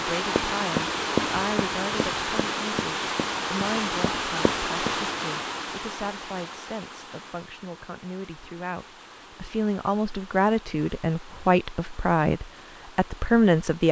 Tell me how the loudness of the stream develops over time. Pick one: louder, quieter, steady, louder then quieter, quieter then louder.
quieter.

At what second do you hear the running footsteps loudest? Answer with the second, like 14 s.
1 s.